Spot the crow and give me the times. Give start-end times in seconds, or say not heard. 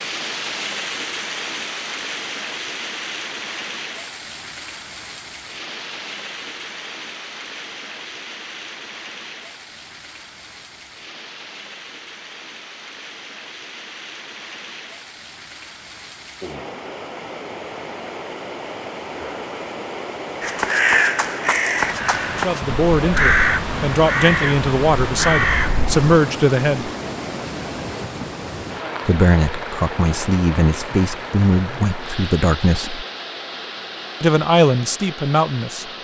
20.4-26.1.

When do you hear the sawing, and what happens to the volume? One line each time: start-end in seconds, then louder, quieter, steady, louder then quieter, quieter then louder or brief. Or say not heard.
not heard.